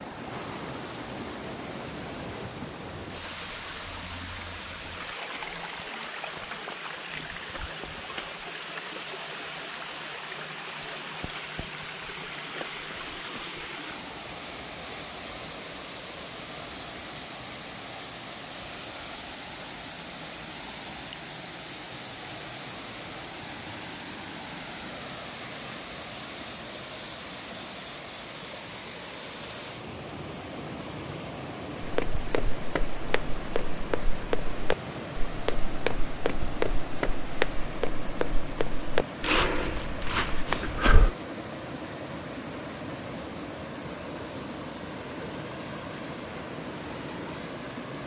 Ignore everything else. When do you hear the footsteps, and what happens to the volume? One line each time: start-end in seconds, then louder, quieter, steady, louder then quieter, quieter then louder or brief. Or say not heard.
31.8-41.1 louder.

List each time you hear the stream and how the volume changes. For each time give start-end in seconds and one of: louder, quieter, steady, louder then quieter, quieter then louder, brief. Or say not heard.
0.0-48.0 steady.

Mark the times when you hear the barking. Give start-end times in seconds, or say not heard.
not heard.